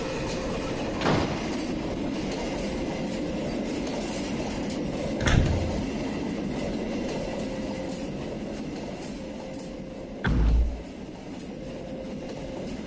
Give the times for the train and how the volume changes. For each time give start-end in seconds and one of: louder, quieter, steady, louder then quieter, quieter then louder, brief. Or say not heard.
0.0-12.8 quieter.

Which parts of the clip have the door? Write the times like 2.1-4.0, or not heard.
1.0-1.6, 5.2-5.8, 10.2-10.8.